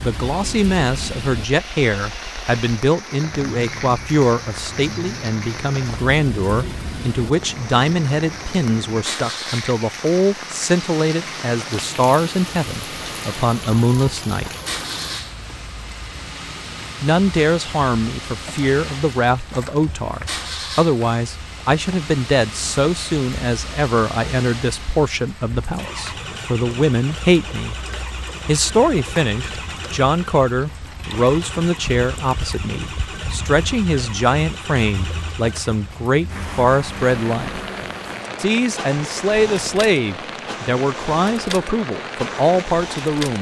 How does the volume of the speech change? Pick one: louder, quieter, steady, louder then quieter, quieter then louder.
steady.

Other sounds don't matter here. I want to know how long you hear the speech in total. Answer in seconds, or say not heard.
39 s.